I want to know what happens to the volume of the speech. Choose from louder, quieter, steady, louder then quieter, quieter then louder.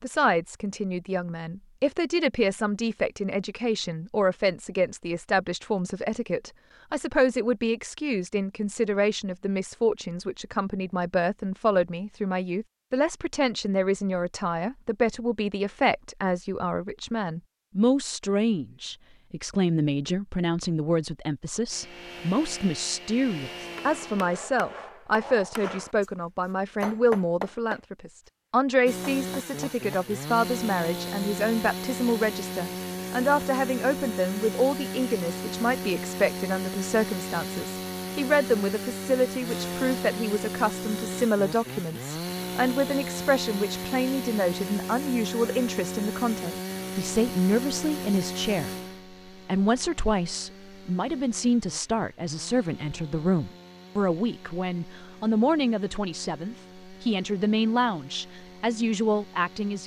steady.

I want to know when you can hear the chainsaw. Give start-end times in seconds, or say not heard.
21.7-24.3, 28.9-59.8.